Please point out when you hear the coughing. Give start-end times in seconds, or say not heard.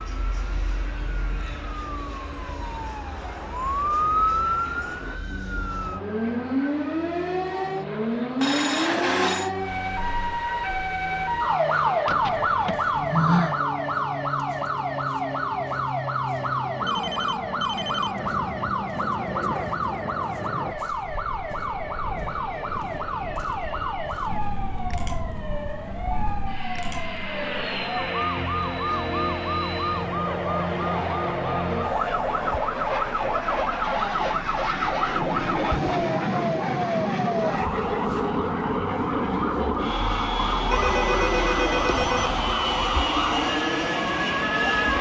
not heard.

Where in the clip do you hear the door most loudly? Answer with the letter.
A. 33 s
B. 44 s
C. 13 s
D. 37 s
C.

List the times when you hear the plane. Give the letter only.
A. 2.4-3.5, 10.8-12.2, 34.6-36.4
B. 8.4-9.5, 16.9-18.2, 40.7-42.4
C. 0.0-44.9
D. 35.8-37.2
C.